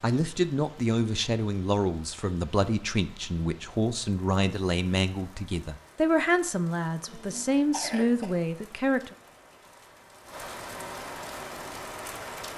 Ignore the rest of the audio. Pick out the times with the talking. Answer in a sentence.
The talking can be heard from 0.0 to 9.1 s.